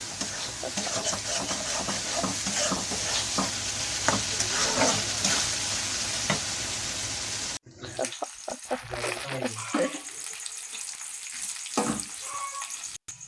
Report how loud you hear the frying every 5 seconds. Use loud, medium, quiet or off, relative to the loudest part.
loud, loud, medium.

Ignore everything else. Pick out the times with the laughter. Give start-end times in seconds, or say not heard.
0.3-1.2, 7.7-10.1.